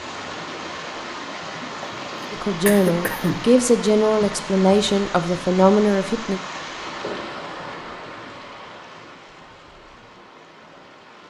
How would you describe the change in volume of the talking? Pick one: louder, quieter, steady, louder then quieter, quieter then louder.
steady.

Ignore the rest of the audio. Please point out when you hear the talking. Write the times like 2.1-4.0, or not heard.
2.3-6.4.